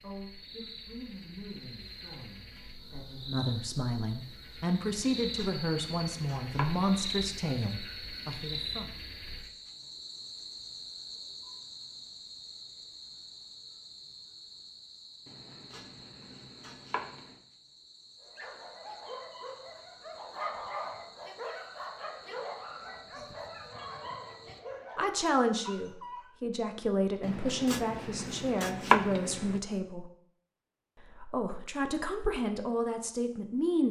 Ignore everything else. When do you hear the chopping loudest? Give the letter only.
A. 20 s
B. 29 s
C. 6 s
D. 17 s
B.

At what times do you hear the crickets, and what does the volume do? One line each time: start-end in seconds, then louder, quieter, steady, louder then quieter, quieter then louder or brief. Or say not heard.
0.0-24.6 louder then quieter.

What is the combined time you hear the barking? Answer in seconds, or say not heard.
8 s.